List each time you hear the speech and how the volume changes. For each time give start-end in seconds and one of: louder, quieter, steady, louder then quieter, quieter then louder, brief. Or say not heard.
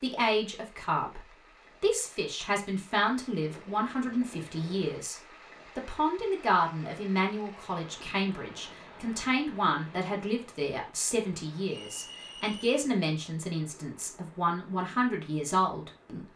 0.0-16.2 steady.